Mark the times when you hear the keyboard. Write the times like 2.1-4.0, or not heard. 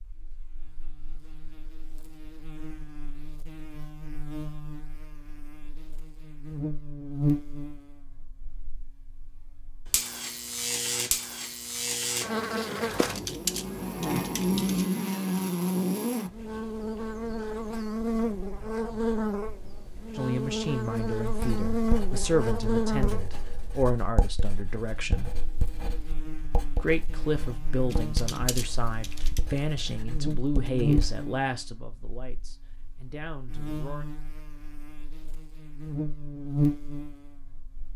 12.9-14.8, 27.9-29.4.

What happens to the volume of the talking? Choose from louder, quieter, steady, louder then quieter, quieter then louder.
quieter.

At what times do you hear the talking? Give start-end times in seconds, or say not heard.
20.1-25.4, 26.8-34.0.